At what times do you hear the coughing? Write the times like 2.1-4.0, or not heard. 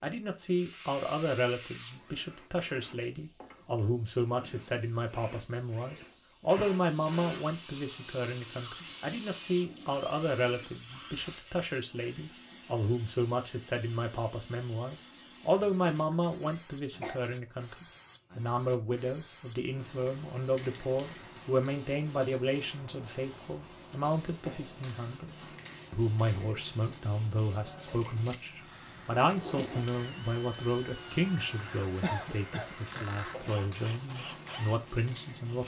6.0-6.8, 15.9-17.2, 32.0-33.5.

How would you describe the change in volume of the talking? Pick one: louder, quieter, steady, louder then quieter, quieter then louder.
steady.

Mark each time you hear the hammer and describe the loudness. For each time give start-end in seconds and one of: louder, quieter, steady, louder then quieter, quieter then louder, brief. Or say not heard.
not heard.